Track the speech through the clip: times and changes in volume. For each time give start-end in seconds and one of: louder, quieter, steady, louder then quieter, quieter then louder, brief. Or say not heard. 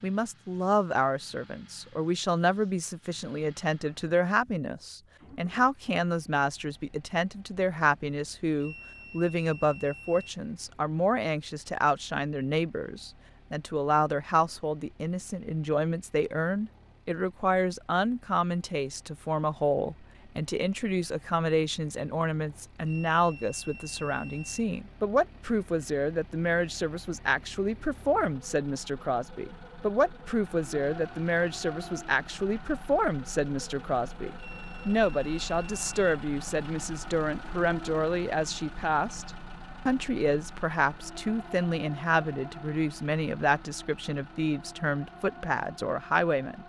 0.0-46.6 steady.